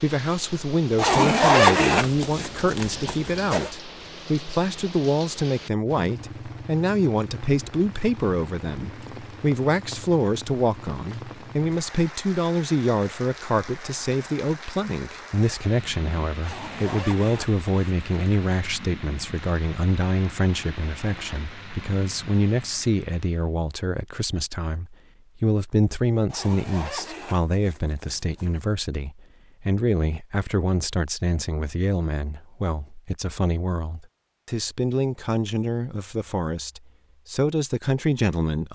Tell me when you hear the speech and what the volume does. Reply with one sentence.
You can hear the speech from 0.0 to 38.7 s, at a steady volume.